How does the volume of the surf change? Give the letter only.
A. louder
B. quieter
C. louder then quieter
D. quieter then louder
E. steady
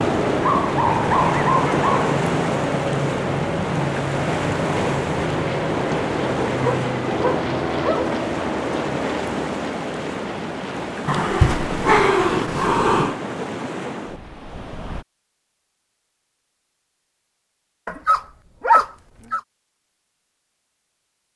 B.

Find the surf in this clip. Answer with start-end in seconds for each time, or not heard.
0.0-15.1.